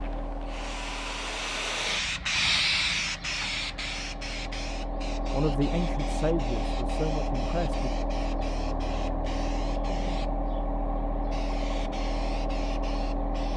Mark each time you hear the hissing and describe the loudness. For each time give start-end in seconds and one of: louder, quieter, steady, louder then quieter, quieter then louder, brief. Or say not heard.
0.0-13.5 quieter.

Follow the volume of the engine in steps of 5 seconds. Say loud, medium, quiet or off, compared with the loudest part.
medium, loud, loud.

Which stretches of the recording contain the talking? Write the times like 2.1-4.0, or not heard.
5.3-7.9.